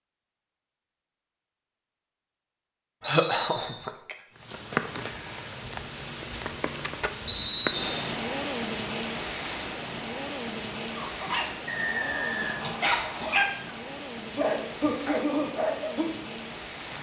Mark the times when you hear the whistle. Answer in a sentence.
You can hear the whistle from 3.0 to 3.8 s, from 7.2 to 8.0 s and from 11.7 to 13.4 s.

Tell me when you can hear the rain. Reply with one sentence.
The rain can be heard from 4.3 to 16.9 s.